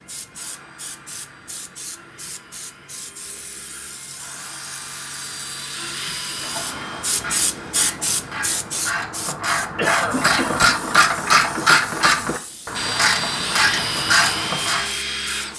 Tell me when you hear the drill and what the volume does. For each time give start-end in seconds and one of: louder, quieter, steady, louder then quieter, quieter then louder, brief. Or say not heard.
0.0-8.8 louder then quieter
12.7-15.5 brief.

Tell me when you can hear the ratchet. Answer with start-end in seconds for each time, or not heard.
6.4-14.9.